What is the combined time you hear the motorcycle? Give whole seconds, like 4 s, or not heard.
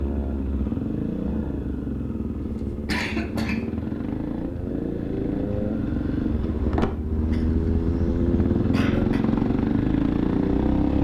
11 s.